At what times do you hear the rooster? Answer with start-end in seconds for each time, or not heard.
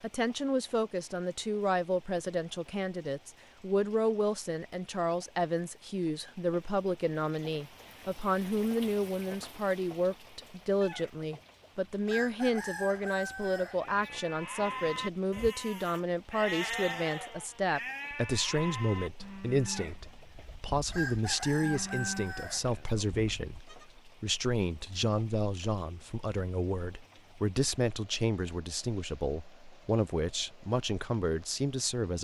10.8-14.2, 19.6-23.1.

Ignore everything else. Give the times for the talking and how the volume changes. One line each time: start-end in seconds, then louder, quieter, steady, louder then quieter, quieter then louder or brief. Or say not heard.
0.0-32.1 steady.